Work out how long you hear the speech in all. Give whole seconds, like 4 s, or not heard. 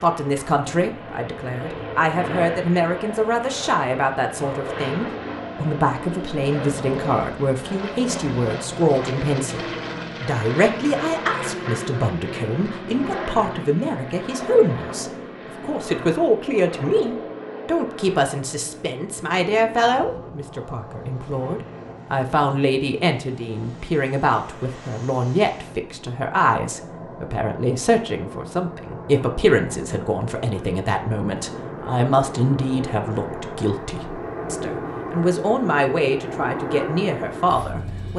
38 s.